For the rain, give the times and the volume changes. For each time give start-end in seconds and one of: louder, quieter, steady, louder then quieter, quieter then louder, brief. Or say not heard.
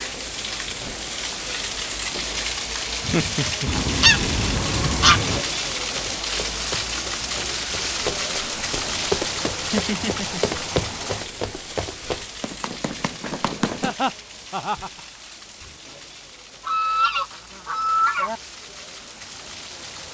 0.0-20.0 quieter.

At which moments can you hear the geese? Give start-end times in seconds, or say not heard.
3.6-5.5, 16.6-18.4.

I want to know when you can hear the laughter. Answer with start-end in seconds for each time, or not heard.
3.0-4.0, 9.7-10.6, 13.8-15.0.